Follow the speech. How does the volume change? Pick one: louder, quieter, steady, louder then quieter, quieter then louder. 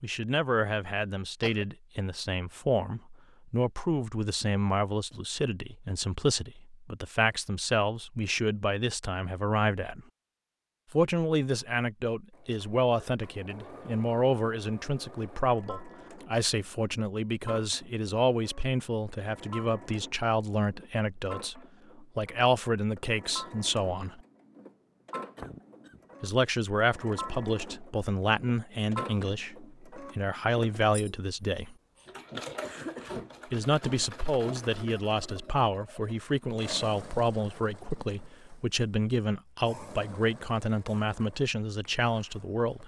steady.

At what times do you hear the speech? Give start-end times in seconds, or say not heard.
0.0-10.0, 10.9-24.2, 26.2-31.8, 33.5-42.8.